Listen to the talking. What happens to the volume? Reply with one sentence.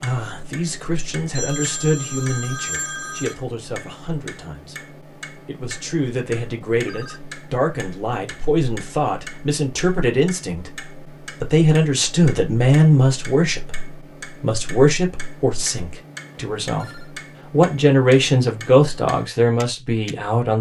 The volume of the talking goes up.